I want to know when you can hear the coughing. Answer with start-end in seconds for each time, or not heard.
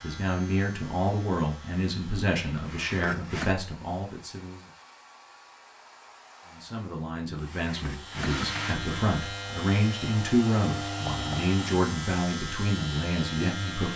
2.5-3.5, 7.3-8.9.